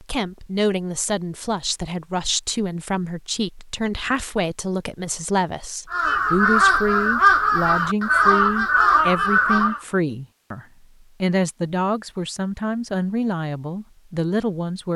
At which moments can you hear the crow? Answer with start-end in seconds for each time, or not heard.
5.9-9.8.